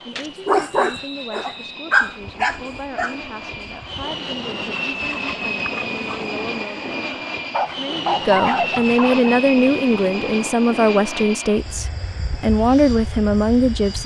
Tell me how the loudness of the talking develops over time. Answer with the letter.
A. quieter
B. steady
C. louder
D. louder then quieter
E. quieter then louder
C.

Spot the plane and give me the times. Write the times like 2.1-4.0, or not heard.
0.0-14.0.